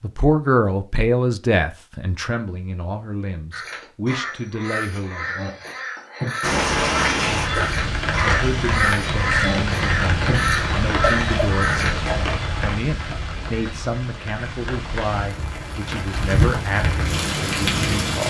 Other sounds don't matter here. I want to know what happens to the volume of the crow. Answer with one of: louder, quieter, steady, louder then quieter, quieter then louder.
louder.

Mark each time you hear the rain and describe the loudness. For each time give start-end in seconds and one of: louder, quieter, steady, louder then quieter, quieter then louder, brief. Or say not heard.
6.4-18.2 quieter then louder.